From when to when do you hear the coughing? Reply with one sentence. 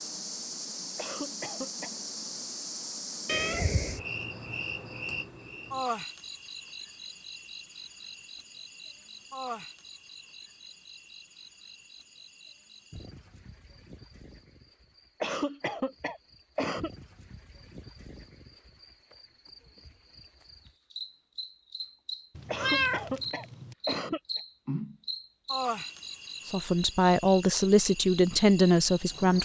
You can hear the coughing from 0.9 to 1.9 s, from 15.2 to 16.9 s and from 22.4 to 24.4 s.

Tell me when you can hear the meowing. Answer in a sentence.
You can hear the meowing from 3.2 to 4.0 s and from 22.4 to 23.8 s.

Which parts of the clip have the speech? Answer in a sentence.
You can hear the speech from 26.4 to 29.4 s.